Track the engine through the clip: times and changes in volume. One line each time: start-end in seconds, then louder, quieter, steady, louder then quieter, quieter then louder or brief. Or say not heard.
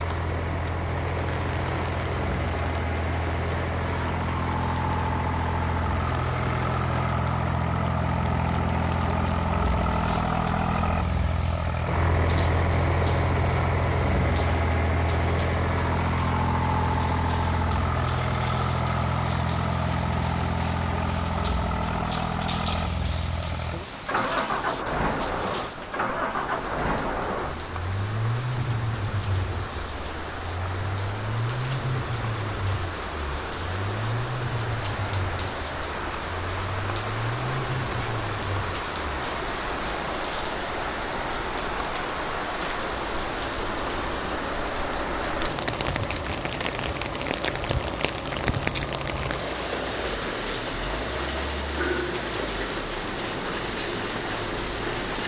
0.0-55.2 quieter.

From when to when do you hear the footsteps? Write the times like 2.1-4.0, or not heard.
not heard.